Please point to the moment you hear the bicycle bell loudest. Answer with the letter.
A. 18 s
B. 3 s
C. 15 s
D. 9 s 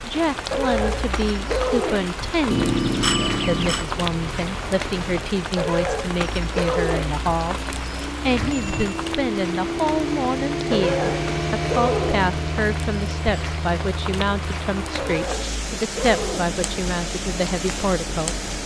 B.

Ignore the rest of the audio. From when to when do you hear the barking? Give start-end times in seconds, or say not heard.
0.5-2.2, 5.5-7.2, 10.7-12.3, 14.9-16.6.